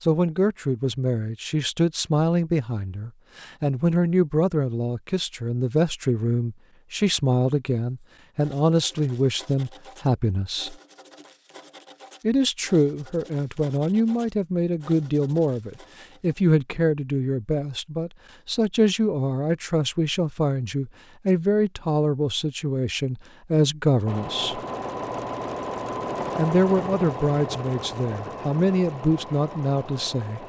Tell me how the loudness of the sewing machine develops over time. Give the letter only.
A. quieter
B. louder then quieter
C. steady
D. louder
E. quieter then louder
A.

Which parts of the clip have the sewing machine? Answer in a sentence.
You can hear the sewing machine from 24.1 to 30.4 s.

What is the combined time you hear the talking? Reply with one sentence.
You can hear the talking for 27 seconds altogether.